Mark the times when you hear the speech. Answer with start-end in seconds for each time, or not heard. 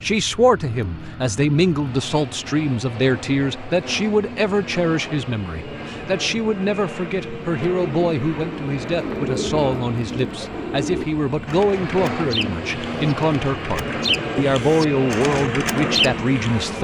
0.0-16.7.